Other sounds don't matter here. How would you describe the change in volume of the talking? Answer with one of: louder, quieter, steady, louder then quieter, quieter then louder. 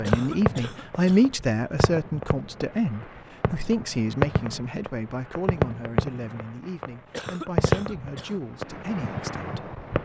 quieter.